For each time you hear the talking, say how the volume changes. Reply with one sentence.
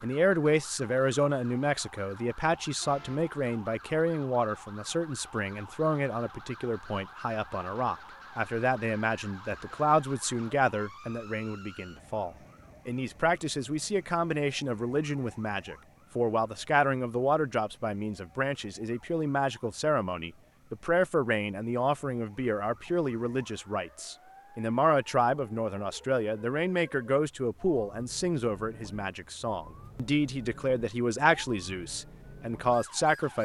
You can hear the talking from 0.0 to 33.3 s, at a steady volume.